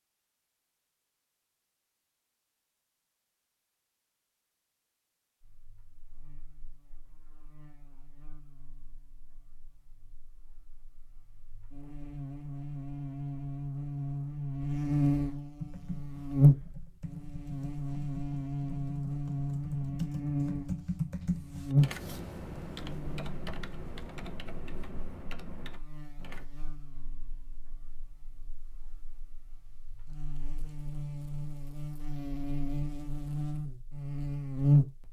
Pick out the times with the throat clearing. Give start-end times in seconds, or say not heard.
not heard.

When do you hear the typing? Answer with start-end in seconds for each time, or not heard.
15.6-26.4.